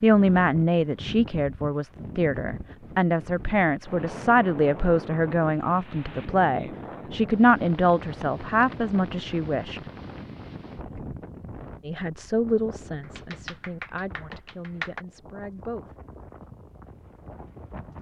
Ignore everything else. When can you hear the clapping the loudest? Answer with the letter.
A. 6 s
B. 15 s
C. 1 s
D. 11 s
B.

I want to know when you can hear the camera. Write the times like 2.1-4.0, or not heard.
not heard.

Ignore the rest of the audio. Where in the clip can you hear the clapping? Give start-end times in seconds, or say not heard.
13.0-15.1.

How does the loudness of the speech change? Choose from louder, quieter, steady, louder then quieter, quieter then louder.
quieter.